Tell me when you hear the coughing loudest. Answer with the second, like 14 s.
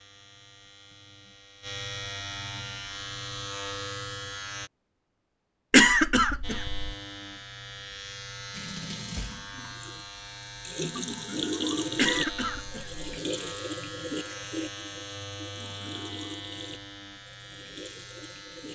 6 s.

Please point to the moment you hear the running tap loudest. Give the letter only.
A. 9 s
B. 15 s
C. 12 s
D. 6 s
C.